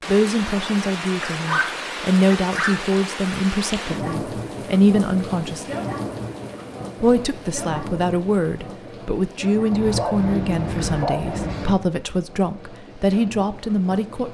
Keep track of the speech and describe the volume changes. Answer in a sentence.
The volume of the speech stays about the same.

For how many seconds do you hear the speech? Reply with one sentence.
The speech can be heard for 13 seconds in total.